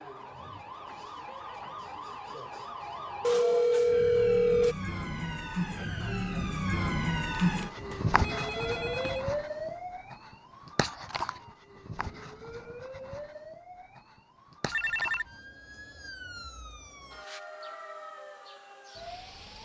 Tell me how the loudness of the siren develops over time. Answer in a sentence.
The loudness of the siren goes up, then down.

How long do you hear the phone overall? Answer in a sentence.
The phone can be heard for 4 seconds in total.